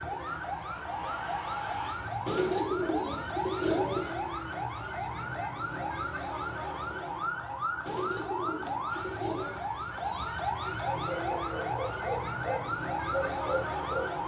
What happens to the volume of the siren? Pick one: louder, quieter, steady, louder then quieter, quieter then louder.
steady.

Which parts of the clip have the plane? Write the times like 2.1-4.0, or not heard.
not heard.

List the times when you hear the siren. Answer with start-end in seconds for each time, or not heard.
0.0-14.2.